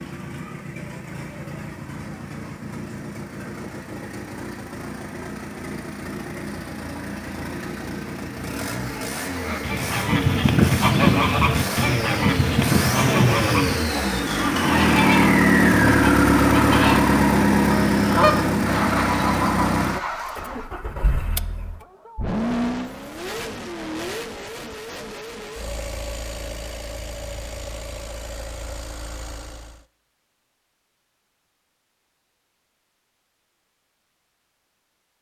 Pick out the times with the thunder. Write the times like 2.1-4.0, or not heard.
not heard.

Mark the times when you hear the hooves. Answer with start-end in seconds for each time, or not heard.
not heard.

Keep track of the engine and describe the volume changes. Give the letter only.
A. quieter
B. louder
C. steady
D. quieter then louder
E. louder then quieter
E.